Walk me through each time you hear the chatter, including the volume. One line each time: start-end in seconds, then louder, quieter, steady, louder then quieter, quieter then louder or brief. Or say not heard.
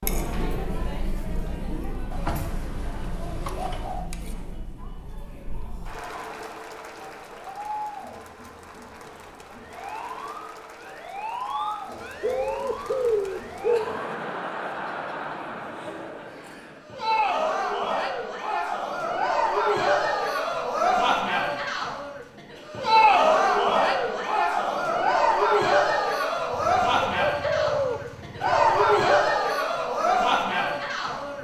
0.0-31.3 louder.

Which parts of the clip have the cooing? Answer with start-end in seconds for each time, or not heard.
2.1-4.1, 11.9-13.8, 26.5-29.0.